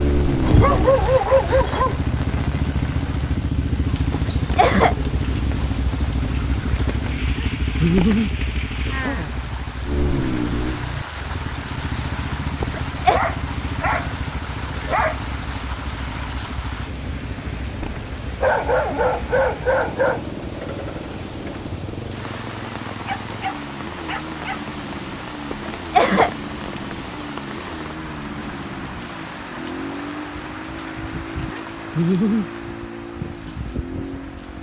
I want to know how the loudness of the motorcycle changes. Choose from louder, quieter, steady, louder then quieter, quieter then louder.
quieter.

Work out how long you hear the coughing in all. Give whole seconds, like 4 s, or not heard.
2 s.